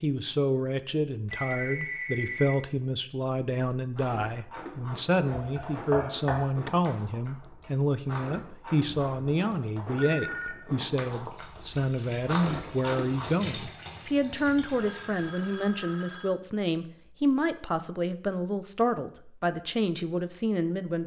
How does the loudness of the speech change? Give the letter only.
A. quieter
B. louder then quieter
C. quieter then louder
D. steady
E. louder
D.